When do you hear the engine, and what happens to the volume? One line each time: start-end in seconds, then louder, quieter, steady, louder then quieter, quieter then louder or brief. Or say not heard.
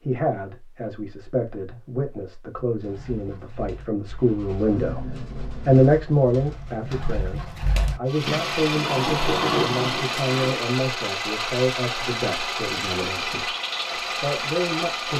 8.1-15.1 steady.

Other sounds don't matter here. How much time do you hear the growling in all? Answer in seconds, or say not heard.
3 s.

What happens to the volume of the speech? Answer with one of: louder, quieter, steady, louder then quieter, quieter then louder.
louder then quieter.